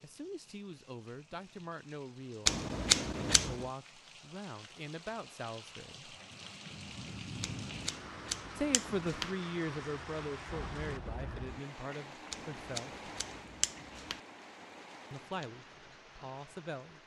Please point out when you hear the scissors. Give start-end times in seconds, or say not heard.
2.5-3.6, 7.4-9.3, 12.3-14.2.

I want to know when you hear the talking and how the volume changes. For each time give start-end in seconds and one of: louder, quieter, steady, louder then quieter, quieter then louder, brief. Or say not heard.
0.0-6.2 steady
8.6-13.1 quieter
15.1-17.0 brief.